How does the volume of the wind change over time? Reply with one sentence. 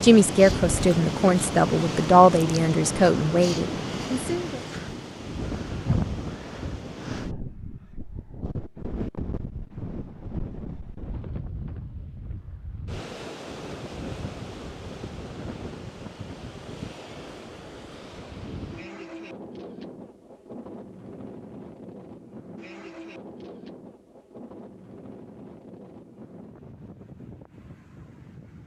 The volume of the wind goes down.